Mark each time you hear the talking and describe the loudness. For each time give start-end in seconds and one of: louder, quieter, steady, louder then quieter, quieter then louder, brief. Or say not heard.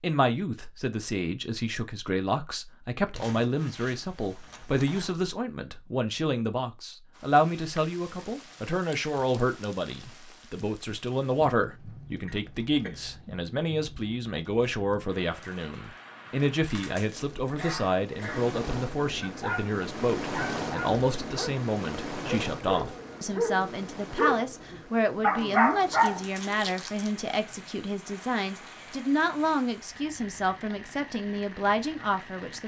0.0-32.6 steady.